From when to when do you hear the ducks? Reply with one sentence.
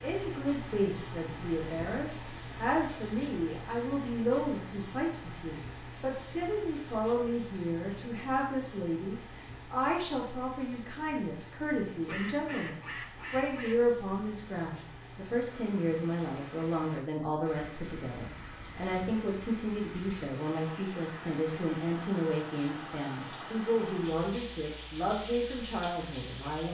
The ducks can be heard from 11.8 to 13.9 s.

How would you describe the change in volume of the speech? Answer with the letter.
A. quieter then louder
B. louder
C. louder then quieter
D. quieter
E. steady
E.